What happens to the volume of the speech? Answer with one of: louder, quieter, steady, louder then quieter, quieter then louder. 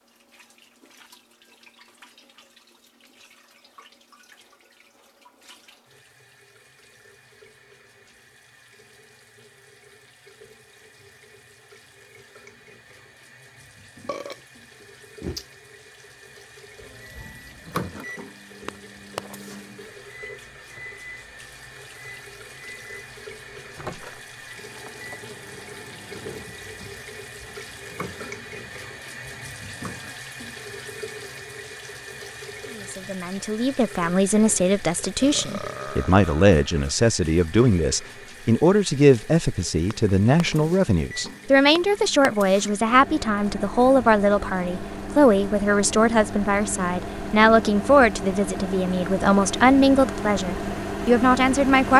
steady.